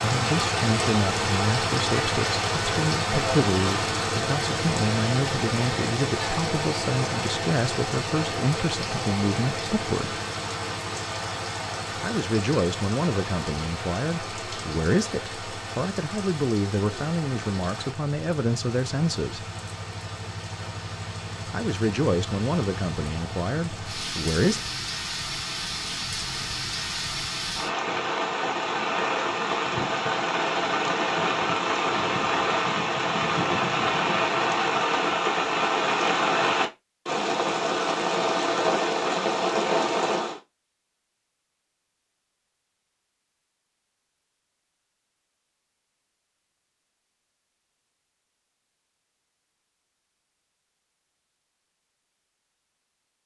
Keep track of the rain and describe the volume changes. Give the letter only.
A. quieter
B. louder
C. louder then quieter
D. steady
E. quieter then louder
E.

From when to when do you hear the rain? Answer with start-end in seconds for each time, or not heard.
0.0-40.4.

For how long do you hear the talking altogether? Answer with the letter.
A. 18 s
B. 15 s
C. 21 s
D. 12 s
C.